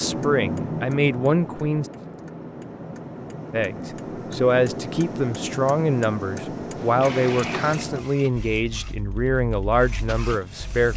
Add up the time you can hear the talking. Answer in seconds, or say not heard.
9 s.